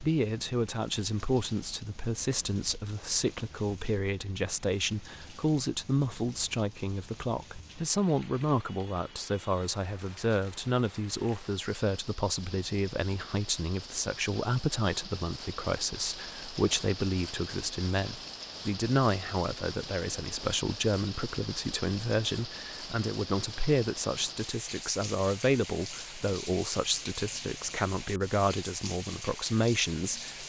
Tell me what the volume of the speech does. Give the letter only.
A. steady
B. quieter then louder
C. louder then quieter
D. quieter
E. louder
A.